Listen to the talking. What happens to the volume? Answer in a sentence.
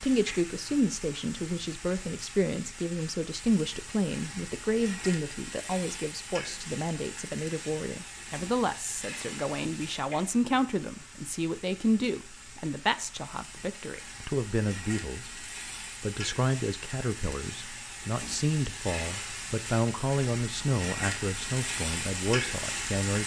The loudness of the talking stays about the same.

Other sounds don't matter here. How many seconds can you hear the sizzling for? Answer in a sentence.
The sizzling can be heard for 23 seconds in total.